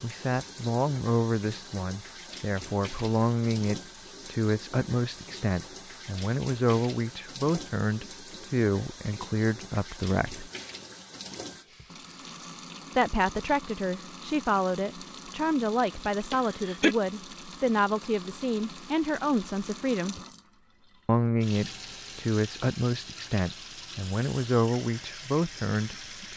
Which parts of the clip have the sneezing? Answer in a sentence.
The sneezing can be heard from 16.3 to 16.9 s.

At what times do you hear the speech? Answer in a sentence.
The speech can be heard from 0.0 to 10.5 s, from 12.9 to 20.1 s and from 21.1 to 26.3 s.